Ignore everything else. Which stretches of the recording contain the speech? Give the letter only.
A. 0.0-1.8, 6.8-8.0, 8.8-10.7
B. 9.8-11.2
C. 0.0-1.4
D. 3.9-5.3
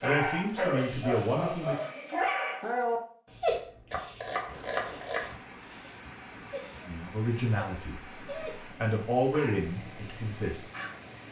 A.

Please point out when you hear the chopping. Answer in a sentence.
You can hear the chopping from 3.9 to 5.3 s.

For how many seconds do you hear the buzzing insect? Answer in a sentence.
You can't hear the buzzing insect here.